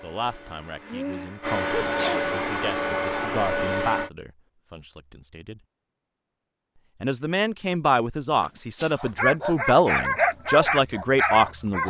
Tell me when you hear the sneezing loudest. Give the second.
2 s.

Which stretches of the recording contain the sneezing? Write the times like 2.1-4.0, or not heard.
0.8-2.2, 8.3-9.2.